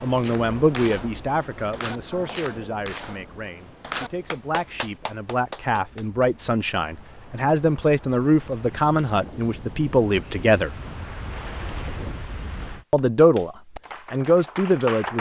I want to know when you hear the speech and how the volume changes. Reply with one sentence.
The speech can be heard from 0.0 to 10.8 s, getting quieter then louder; and briefly from 12.9 to 15.1 s.